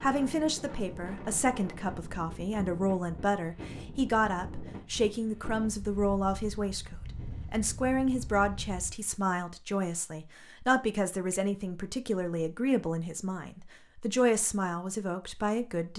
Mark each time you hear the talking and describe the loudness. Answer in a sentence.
You can hear the talking from 0.0 to 15.9 s, at a steady volume.